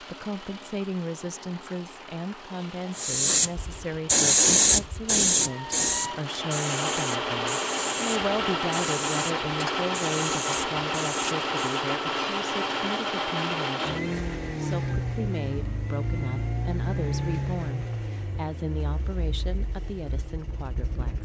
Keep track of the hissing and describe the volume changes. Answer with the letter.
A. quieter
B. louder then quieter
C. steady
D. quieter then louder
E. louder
A.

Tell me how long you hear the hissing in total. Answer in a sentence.
You can hear the hissing for 9 seconds altogether.